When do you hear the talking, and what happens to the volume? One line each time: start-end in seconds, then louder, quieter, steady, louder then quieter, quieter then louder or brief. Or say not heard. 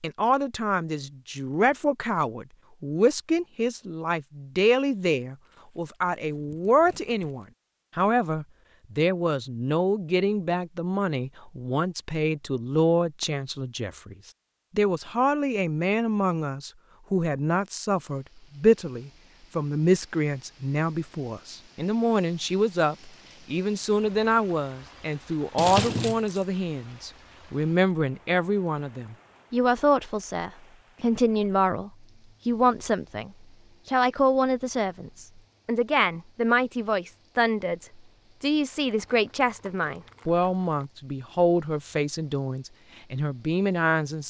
0.0-44.2 steady.